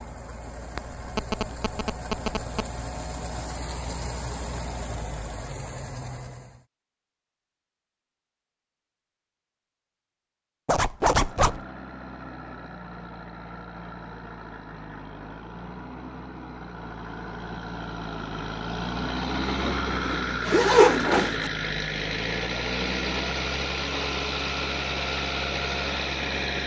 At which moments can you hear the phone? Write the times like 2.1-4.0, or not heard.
0.8-2.7.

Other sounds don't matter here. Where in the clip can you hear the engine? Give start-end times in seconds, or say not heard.
0.0-6.7, 10.9-26.6.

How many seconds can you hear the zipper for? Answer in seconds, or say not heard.
3 s.